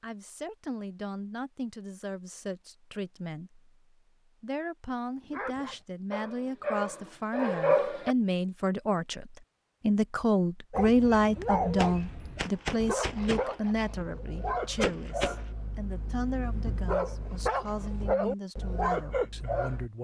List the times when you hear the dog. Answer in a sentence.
You can hear the dog from 5.2 to 8.2 s and from 10.7 to 19.9 s.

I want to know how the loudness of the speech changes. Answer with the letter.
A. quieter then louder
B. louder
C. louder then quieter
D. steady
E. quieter
C.